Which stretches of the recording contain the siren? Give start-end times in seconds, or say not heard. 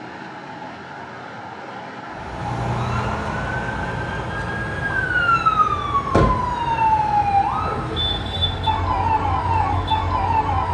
2.1-10.7.